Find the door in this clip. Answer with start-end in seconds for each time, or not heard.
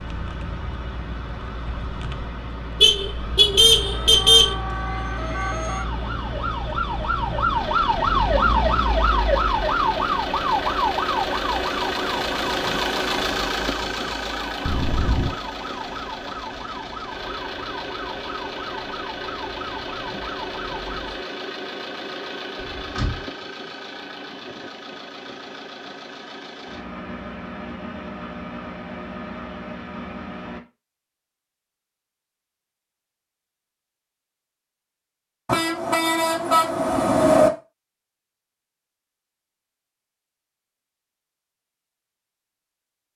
22.6-23.2.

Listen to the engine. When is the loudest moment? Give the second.
13 s.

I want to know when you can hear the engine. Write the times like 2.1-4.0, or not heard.
0.0-30.6.